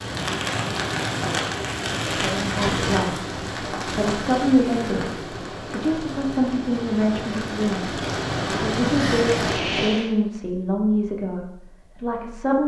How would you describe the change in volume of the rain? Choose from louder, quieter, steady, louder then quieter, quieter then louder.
quieter then louder.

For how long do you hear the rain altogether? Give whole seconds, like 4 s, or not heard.
10 s.